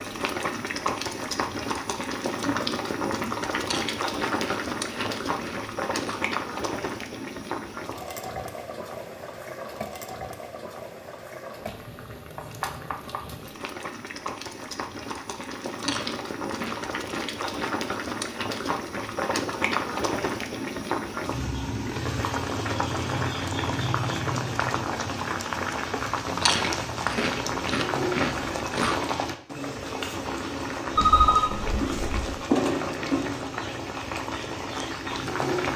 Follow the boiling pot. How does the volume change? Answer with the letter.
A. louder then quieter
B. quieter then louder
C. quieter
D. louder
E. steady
B.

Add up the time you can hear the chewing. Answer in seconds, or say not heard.
7 s.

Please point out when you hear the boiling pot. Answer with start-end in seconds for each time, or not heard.
0.0-35.7.